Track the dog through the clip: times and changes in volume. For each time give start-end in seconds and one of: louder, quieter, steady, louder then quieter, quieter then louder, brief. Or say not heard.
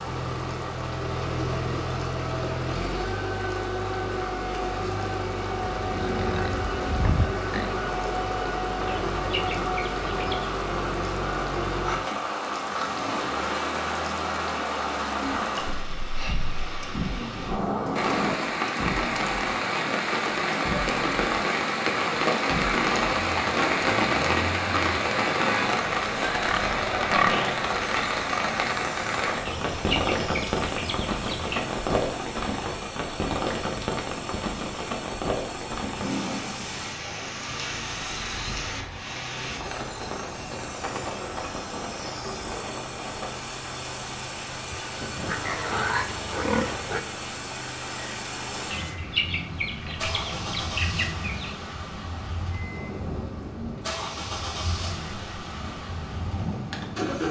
not heard.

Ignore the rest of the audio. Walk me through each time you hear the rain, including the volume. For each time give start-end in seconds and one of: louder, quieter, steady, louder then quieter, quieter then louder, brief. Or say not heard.
0.0-57.2 louder then quieter.